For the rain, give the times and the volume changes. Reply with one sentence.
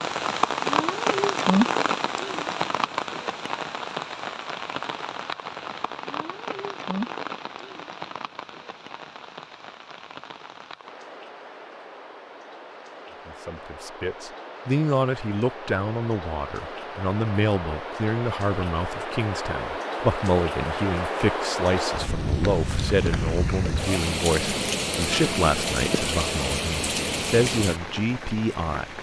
You can hear the rain from 0.0 to 28.9 s, getting quieter then louder.